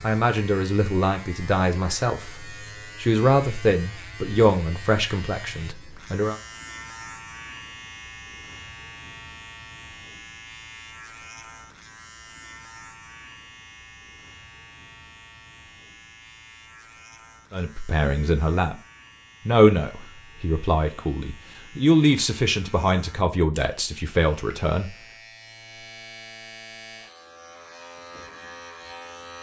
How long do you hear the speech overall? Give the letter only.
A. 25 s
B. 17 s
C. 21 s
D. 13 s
D.